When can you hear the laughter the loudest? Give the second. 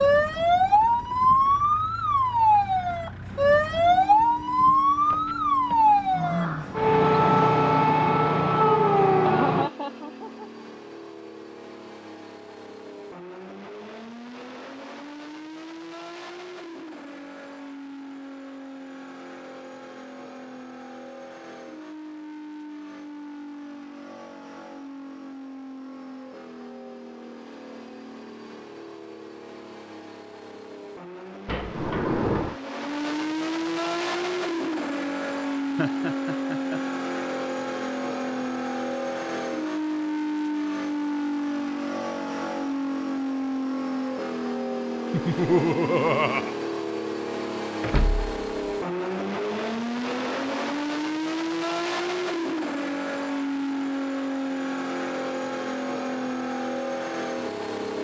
46 s.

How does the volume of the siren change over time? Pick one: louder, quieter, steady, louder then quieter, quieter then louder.
steady.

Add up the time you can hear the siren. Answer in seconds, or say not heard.
10 s.